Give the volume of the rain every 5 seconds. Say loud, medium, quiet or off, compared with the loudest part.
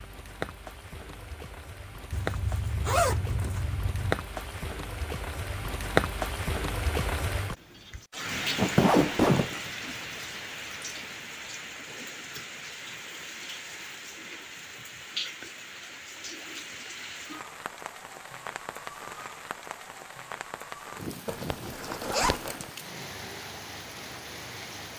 medium, loud, medium, medium, medium.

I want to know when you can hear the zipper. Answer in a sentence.
The zipper can be heard from 2.1 to 4.2 s, from 8.6 to 9.6 s and from 21.2 to 22.6 s.